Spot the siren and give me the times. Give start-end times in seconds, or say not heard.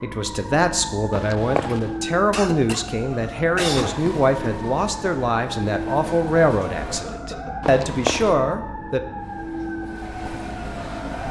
0.0-11.2.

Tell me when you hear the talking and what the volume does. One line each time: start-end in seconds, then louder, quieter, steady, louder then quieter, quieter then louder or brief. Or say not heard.
0.0-9.0 steady.